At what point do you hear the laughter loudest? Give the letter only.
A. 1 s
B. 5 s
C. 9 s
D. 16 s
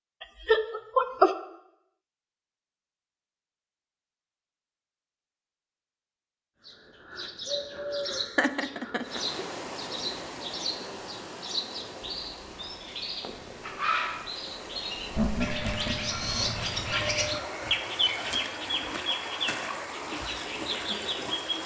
A.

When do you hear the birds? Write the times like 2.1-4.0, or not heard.
6.7-21.6.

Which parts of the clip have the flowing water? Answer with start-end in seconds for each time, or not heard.
9.0-21.6.